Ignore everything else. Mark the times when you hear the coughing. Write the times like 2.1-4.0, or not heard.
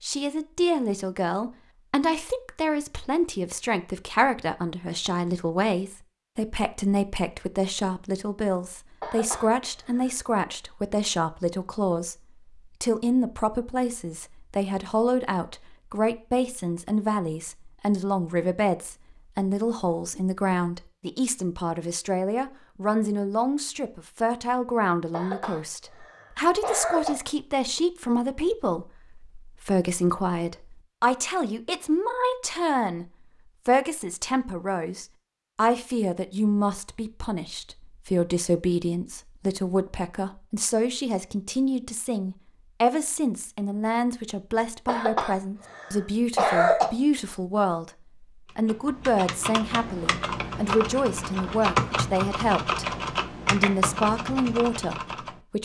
9.0-10.1, 25.1-27.1, 44.9-46.9.